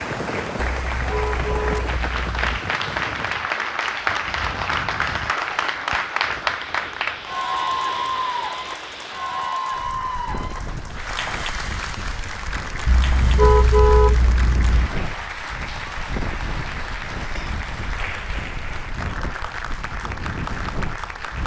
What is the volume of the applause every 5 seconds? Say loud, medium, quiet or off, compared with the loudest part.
loud, loud, medium, medium, medium.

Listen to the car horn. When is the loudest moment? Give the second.
14 s.